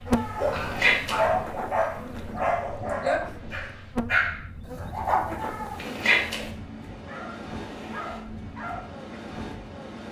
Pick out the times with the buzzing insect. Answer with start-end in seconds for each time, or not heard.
0.0-6.1.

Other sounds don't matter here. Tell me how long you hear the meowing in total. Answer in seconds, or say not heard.
2 s.